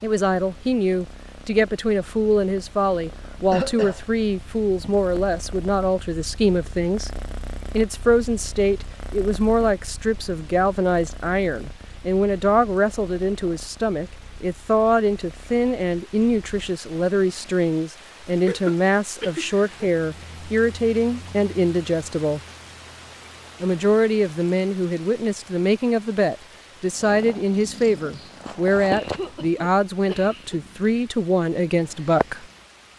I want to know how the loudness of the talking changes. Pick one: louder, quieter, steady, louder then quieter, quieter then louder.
steady.